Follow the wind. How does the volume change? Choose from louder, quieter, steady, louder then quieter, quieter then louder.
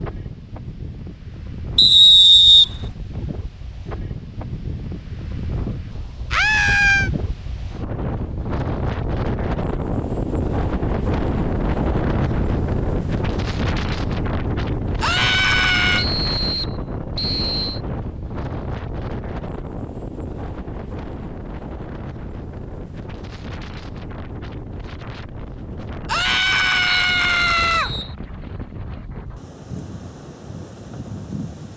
louder then quieter.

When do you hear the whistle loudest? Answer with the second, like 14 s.
2 s.